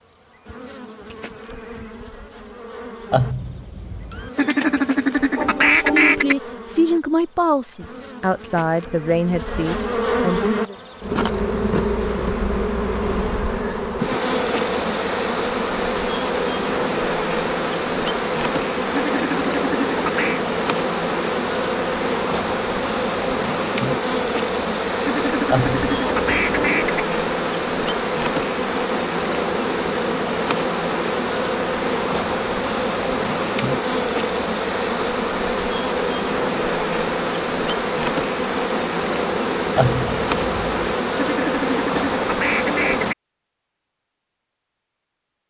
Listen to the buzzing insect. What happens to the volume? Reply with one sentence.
The loudness of the buzzing insect goes up.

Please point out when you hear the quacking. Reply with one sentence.
You can hear the quacking from 4.3 to 6.3 s, from 18.9 to 20.4 s, from 25.1 to 27.1 s and from 41.1 to 43.1 s.